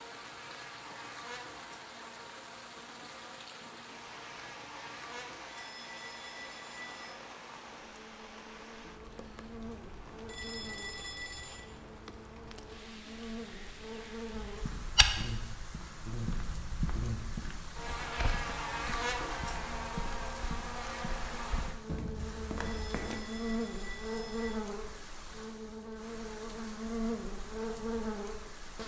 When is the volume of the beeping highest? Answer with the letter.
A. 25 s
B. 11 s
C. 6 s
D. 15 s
B.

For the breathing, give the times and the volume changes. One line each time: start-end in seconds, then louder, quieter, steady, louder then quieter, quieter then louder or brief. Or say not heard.
not heard.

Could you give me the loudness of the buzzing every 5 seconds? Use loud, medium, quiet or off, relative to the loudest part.
medium, medium, medium, loud, loud, loud.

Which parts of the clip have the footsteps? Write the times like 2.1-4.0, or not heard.
14.3-23.2.